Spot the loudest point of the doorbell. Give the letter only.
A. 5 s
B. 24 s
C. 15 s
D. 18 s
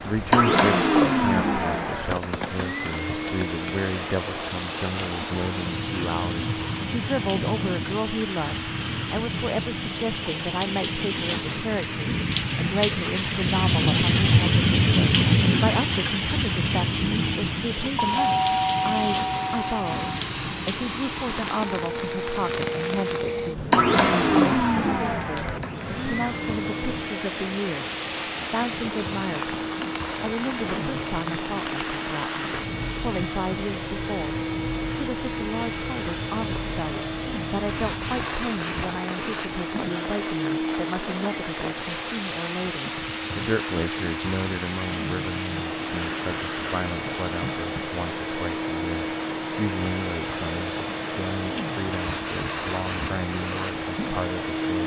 D.